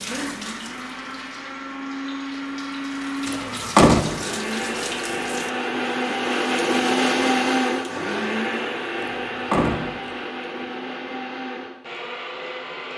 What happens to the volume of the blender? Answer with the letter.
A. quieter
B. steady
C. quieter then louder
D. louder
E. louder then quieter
E.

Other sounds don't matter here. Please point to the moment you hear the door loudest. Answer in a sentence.
The volume of the door peaks at 4 seconds.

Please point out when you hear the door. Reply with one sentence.
You can hear the door from 3.2 to 4.2 s and from 9.1 to 10.1 s.